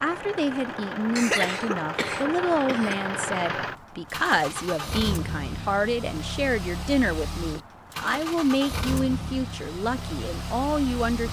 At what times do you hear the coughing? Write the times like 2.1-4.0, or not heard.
1.1-3.1.